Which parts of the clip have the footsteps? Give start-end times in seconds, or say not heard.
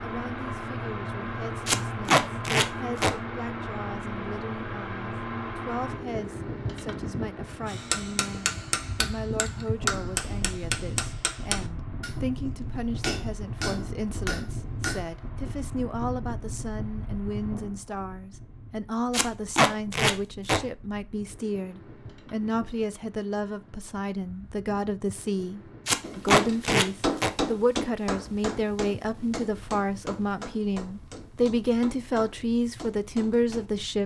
not heard.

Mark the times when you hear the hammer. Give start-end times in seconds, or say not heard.
7.7-15.2, 26.0-33.6.